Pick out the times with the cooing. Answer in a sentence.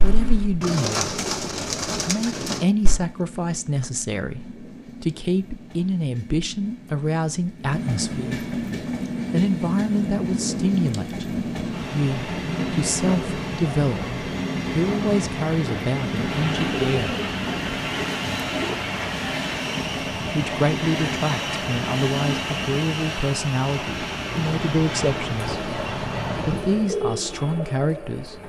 The cooing can be heard from 0.0 to 3.0 s, from 15.5 to 18.8 s and from 25.2 to 28.4 s.